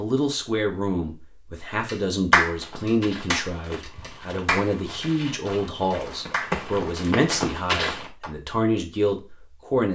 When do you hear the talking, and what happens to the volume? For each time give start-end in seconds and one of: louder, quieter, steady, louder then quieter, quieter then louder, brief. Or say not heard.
0.0-9.9 steady.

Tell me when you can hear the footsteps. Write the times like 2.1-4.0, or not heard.
2.5-8.1.